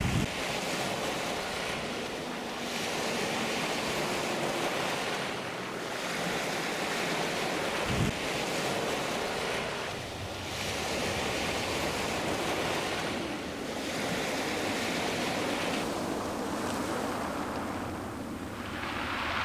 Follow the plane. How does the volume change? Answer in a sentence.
The volume of the plane stays about the same.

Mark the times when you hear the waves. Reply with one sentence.
The waves can be heard from 0.0 to 19.3 s.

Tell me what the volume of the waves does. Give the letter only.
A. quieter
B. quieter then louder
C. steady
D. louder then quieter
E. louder
C.